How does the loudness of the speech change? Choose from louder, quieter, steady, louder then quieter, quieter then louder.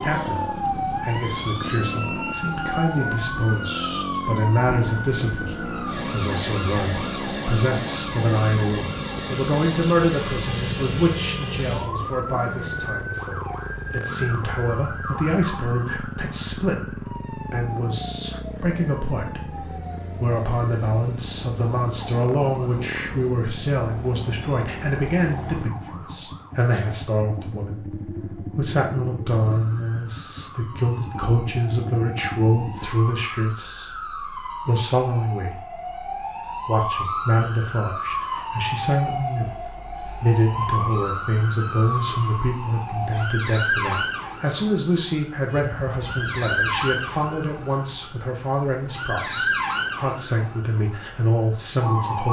steady.